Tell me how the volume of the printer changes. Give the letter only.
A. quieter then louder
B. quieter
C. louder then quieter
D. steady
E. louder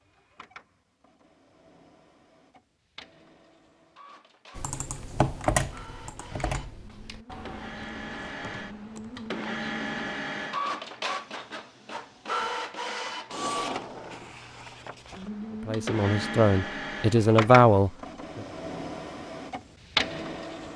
E.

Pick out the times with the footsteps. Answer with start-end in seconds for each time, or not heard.
not heard.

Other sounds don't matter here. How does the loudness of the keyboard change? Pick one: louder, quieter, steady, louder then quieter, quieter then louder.
quieter.